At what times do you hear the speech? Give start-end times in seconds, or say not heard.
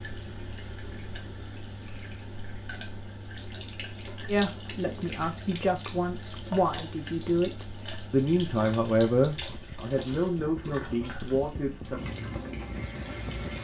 4.2-12.1.